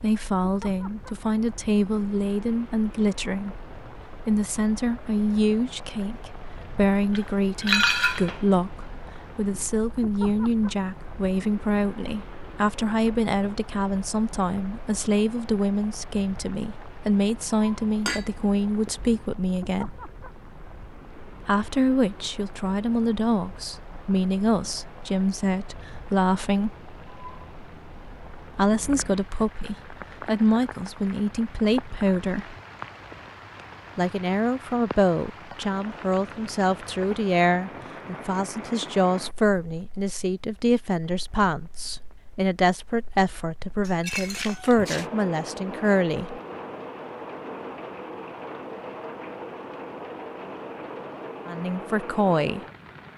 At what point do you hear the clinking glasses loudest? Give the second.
8 s.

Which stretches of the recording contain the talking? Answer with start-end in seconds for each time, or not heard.
0.0-20.0, 21.4-26.8, 28.5-32.5, 34.0-46.4, 51.5-52.6.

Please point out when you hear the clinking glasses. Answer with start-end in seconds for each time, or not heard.
7.2-8.4, 18.1-19.1, 43.9-45.1.